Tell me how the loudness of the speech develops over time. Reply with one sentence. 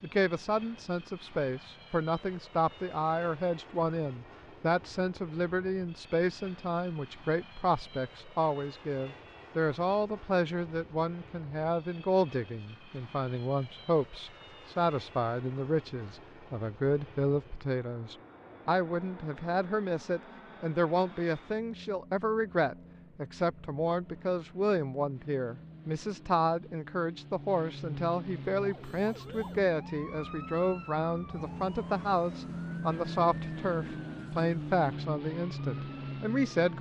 The volume of the speech stays about the same.